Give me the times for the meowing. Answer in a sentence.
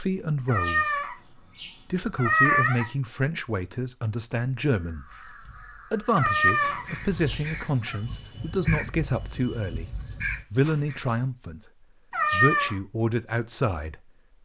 You can hear the meowing from 0.5 to 2.9 s, from 6.2 to 8.0 s and from 12.1 to 12.8 s.